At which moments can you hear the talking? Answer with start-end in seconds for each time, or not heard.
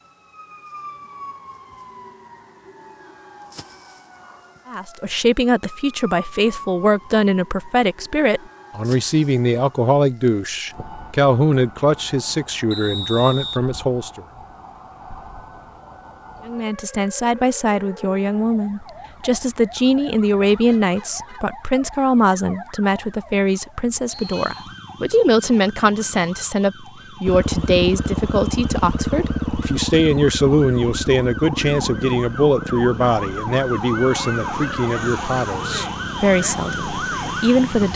4.7-14.2, 16.4-37.9.